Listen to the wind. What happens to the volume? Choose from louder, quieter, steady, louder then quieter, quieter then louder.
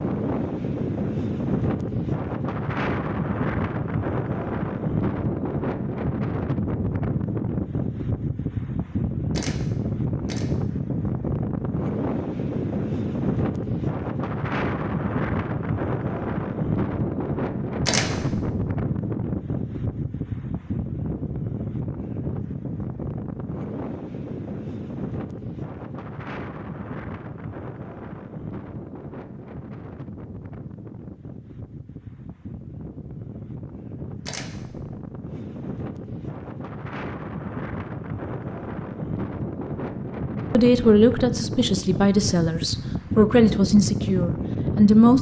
quieter then louder.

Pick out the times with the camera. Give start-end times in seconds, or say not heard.
9.3-10.4, 17.9-18.6, 34.2-35.0.